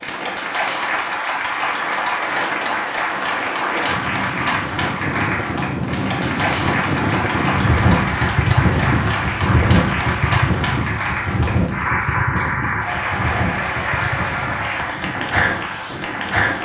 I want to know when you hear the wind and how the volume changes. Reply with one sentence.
The wind can be heard from 0.0 to 16.6 s, getting louder then quieter.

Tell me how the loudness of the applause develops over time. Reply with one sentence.
The volume of the applause stays about the same.